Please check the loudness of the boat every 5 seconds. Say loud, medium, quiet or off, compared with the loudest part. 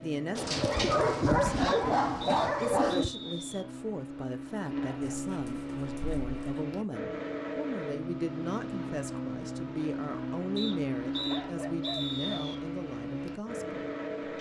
medium, loud, loud.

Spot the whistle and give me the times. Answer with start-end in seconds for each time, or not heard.
1.6-3.6, 10.6-12.6.